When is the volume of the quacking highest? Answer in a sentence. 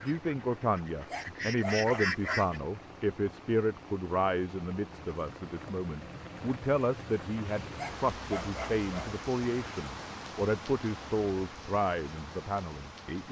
The volume of the quacking peaks at 2 seconds.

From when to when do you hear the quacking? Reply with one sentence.
The quacking can be heard from 0.0 to 2.6 s.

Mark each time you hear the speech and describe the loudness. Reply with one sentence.
The speech can be heard from 0.0 to 13.2 s, at a steady volume.